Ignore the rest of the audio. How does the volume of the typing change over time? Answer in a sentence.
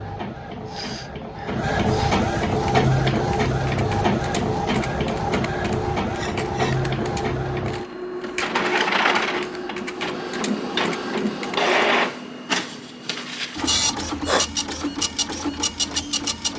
The loudness of the typing stays about the same.